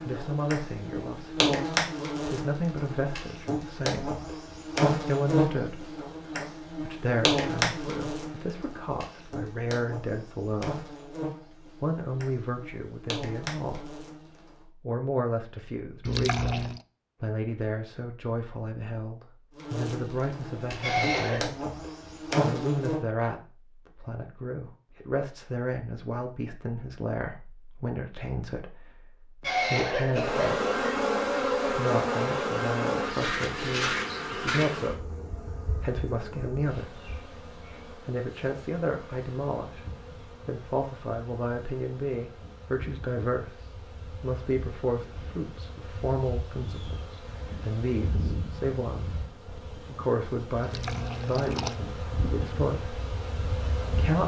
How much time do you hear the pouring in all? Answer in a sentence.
You can hear the pouring for 2 seconds altogether.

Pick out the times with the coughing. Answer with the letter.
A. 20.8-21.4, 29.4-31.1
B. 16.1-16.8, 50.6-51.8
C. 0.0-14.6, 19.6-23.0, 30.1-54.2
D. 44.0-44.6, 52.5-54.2
A.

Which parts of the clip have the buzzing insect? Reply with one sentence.
The buzzing insect can be heard from 0.0 to 14.6 s, from 19.6 to 23.0 s and from 30.1 to 54.2 s.